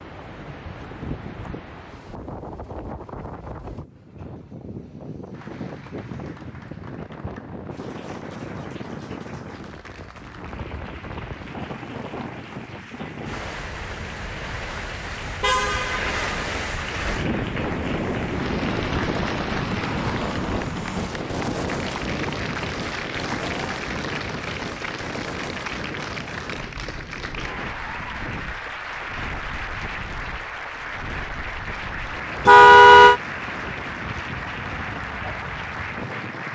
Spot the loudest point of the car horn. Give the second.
33 s.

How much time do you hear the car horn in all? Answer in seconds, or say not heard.
2 s.